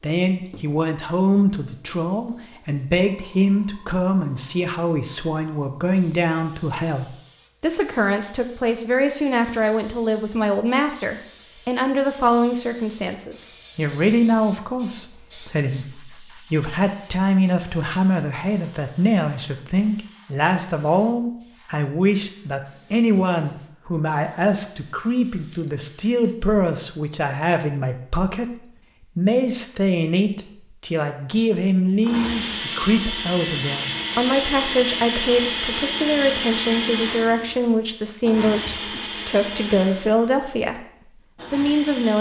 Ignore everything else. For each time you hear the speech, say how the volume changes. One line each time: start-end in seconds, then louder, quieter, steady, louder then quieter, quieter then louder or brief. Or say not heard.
0.0-42.1 steady.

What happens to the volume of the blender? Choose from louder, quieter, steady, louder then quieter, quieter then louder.
quieter.